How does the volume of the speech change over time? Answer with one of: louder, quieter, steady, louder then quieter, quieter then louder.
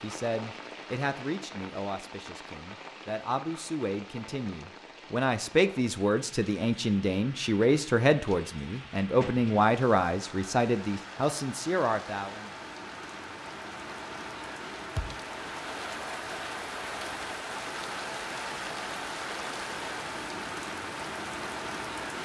louder.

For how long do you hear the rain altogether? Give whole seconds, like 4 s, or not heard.
22 s.